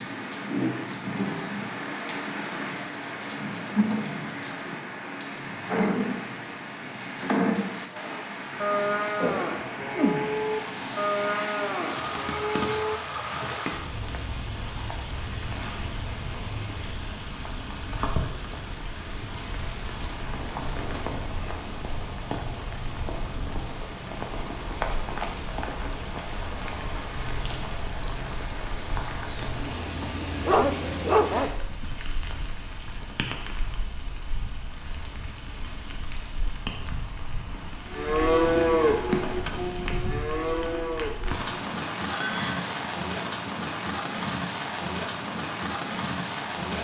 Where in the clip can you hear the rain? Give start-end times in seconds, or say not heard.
0.0-46.7.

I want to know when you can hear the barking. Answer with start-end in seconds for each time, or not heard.
30.0-31.5.